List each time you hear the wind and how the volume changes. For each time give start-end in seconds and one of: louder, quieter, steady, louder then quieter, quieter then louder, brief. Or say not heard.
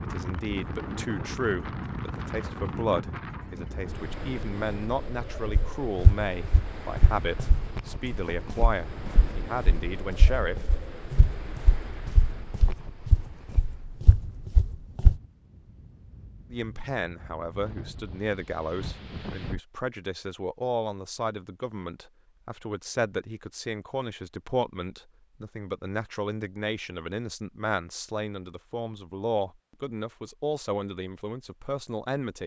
0.0-19.6 quieter.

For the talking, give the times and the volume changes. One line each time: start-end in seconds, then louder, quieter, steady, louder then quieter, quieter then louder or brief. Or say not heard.
0.0-10.8 steady
16.5-32.4 steady.